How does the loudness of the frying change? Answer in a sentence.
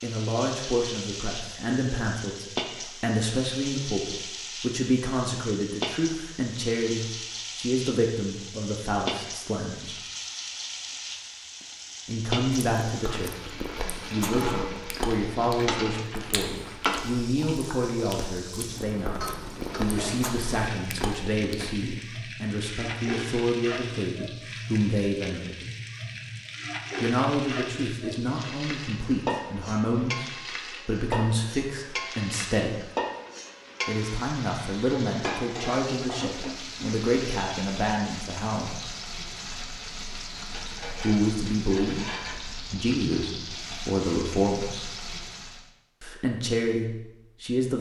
The loudness of the frying stays about the same.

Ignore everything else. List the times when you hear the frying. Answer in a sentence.
You can hear the frying from 0.0 to 45.7 s.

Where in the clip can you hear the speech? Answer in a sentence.
You can hear the speech from 0.0 to 9.9 s, from 12.1 to 25.6 s, from 27.0 to 32.9 s, from 33.9 to 38.8 s, from 41.0 to 45.0 s and from 46.0 to 47.7 s.